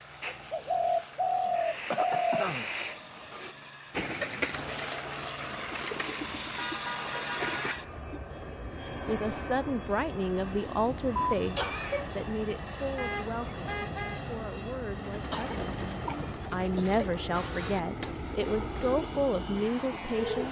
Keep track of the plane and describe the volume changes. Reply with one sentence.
The loudness of the plane goes up.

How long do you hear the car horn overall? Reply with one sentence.
The car horn can be heard for 3 seconds in total.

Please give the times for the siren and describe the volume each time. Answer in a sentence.
The siren can't be heard in this clip.